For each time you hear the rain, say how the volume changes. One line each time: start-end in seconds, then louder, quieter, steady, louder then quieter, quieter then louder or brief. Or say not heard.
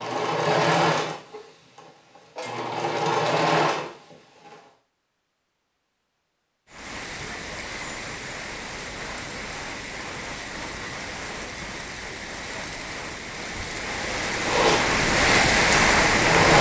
6.7-16.5 louder.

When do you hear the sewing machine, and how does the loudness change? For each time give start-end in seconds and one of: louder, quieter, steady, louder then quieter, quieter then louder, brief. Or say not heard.
0.0-4.5 quieter then louder
14.4-16.5 brief.